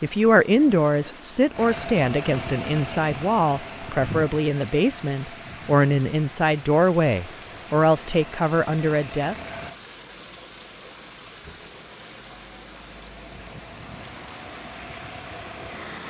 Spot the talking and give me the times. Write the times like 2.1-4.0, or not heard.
0.0-9.4.